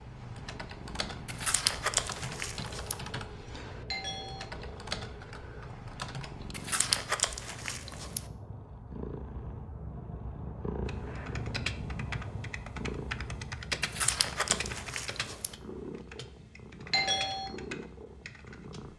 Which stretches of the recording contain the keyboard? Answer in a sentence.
The keyboard can be heard from 0.0 to 6.5 s and from 10.8 to 18.9 s.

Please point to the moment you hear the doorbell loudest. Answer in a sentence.
The volume of the doorbell peaks at 17 seconds.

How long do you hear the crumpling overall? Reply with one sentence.
You can hear the crumpling for 5 seconds altogether.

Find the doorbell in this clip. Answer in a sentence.
You can hear the doorbell from 3.9 to 4.5 s and from 16.9 to 17.5 s.